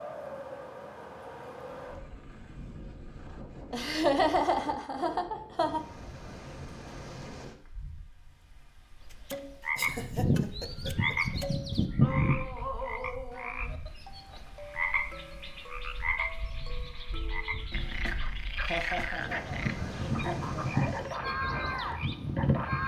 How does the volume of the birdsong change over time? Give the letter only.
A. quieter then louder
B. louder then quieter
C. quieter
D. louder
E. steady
A.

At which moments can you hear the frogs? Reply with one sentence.
You can hear the frogs from 9.1 to 22.8 s.